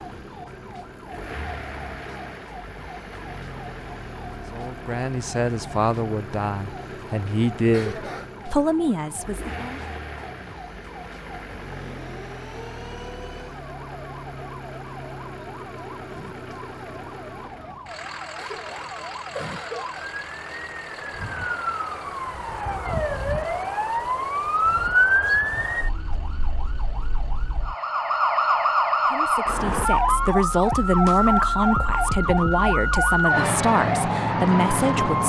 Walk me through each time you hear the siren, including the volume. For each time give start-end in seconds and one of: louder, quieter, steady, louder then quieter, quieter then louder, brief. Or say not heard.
0.0-35.2 louder.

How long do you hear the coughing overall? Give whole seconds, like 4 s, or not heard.
2 s.